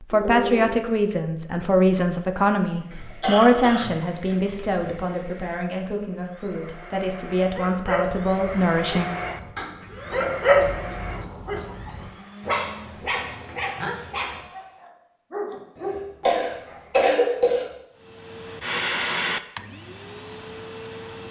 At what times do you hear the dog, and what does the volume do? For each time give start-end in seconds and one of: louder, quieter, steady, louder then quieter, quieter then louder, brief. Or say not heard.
7.3-16.9 louder then quieter.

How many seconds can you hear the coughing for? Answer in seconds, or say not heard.
4 s.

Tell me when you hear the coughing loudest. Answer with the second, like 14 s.
17 s.